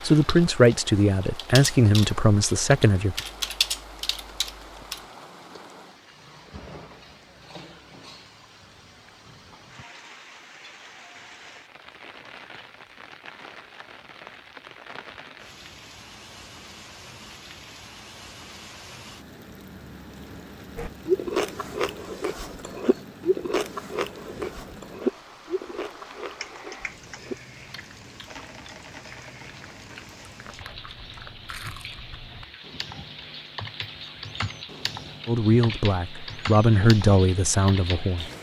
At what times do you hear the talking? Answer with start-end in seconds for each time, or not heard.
0.0-3.1, 35.2-38.3.